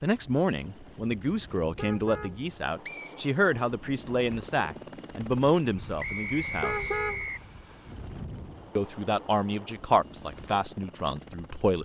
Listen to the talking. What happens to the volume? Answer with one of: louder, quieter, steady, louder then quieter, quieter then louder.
steady.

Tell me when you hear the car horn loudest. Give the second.
7 s.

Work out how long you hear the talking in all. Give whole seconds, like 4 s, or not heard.
10 s.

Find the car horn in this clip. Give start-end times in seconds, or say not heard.
1.8-2.5, 6.6-8.5.